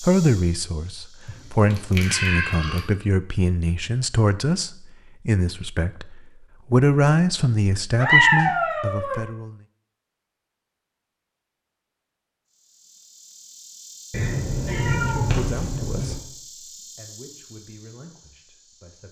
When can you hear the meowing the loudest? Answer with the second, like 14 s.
8 s.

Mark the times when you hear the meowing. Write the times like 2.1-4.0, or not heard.
1.2-2.9, 8.0-9.2, 14.1-16.1.